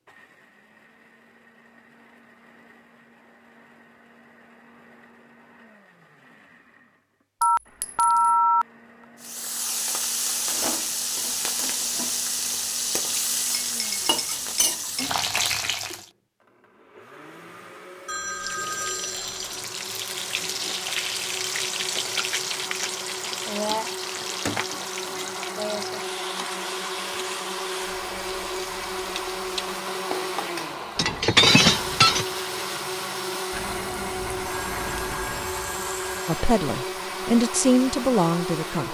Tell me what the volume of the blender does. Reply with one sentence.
The volume of the blender goes up.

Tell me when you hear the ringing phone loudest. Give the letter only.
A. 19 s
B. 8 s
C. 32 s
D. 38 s
B.